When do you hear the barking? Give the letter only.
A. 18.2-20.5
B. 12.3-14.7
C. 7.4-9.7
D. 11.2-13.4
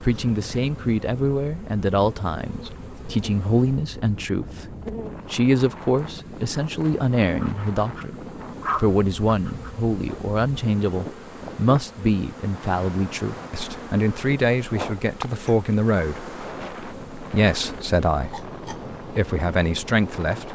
C.